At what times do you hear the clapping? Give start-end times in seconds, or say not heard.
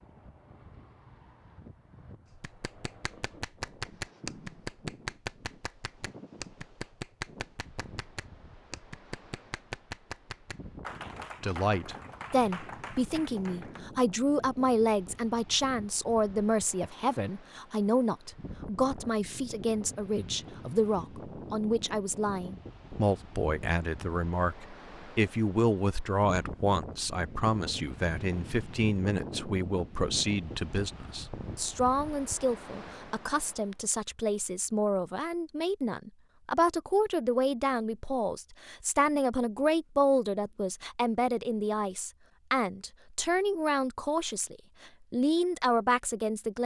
2.3-13.8.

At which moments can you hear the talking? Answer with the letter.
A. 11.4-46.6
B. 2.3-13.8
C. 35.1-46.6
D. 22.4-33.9
A.